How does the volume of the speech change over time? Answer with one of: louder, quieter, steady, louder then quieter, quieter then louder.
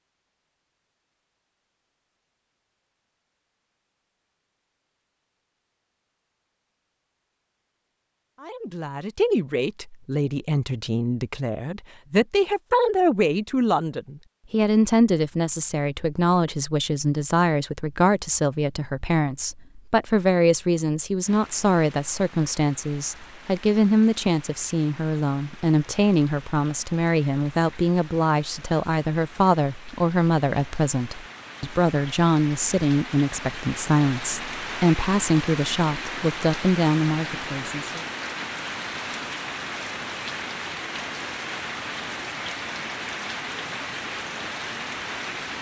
steady.